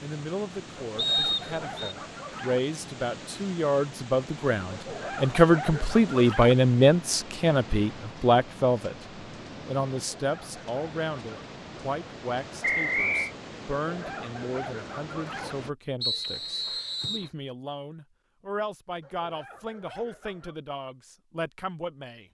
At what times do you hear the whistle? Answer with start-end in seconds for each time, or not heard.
0.9-1.9, 12.6-13.3, 16.0-17.3.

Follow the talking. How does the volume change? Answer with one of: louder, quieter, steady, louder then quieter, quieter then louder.
louder then quieter.